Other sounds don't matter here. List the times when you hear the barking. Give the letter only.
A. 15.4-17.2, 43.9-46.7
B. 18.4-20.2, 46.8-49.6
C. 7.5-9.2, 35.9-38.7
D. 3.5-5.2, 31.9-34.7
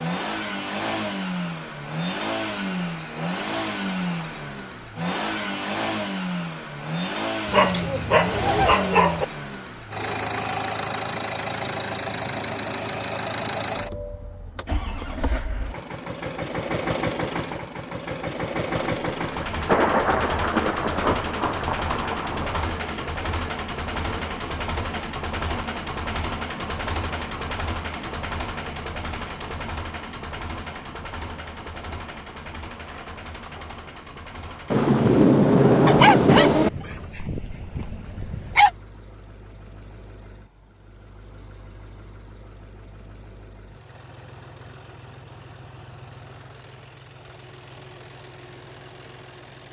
C.